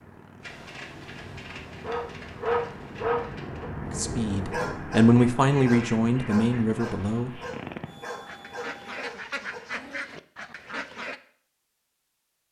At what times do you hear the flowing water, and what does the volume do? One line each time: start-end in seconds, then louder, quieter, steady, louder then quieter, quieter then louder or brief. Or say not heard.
not heard.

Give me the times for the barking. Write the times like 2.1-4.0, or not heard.
0.4-10.1.